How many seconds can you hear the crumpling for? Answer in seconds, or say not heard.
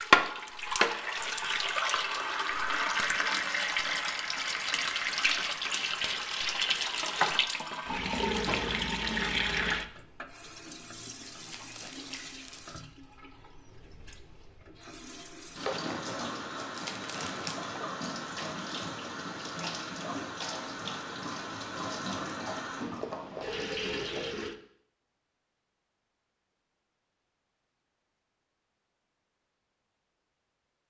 2 s.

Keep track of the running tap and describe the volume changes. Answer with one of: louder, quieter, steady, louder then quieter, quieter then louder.
quieter then louder.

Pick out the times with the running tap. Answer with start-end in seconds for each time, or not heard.
0.0-24.6.